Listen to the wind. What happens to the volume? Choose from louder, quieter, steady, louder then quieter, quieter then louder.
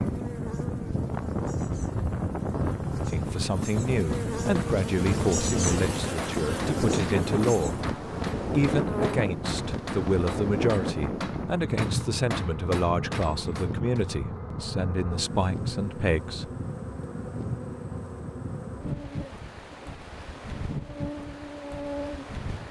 quieter.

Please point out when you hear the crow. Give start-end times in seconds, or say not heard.
not heard.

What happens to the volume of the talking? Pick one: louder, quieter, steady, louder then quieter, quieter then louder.
steady.